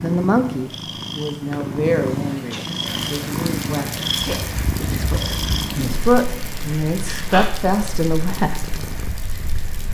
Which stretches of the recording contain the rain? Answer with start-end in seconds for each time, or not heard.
2.9-9.9.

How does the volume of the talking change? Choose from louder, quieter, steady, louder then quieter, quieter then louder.
quieter then louder.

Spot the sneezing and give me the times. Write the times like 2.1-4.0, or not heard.
2.2-2.8, 7.0-7.5.